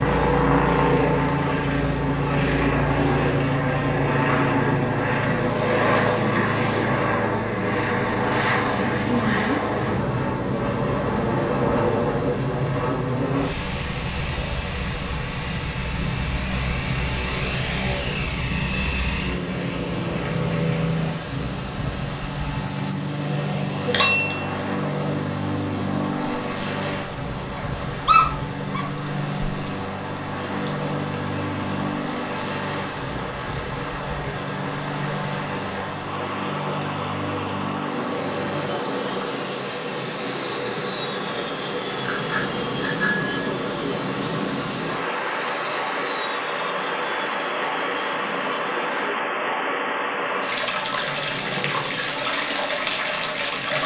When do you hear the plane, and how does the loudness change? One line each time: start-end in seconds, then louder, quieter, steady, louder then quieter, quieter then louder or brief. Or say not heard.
0.0-53.8 quieter.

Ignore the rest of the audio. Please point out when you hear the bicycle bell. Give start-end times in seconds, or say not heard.
23.9-24.4, 42.0-43.6.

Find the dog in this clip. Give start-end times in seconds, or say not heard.
27.6-28.9.